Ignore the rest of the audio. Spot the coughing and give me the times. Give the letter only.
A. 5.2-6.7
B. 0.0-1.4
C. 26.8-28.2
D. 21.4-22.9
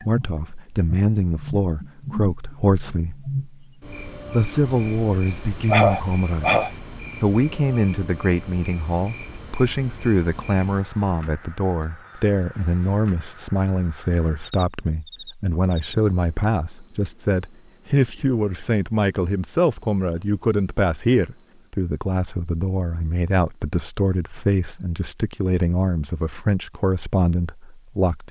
A.